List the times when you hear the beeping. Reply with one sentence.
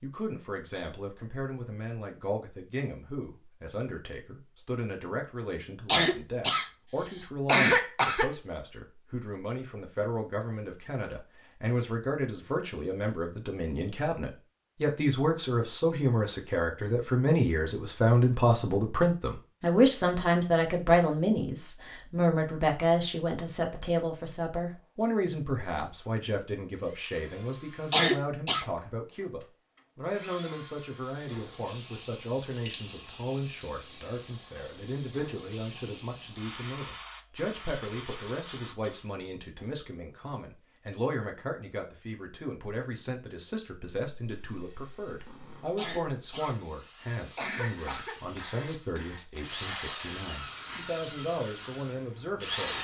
The beeping can't be heard in this clip.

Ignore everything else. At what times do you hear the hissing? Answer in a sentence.
You can hear the hissing from 30.9 to 39.1 s and from 47.7 to 52.8 s.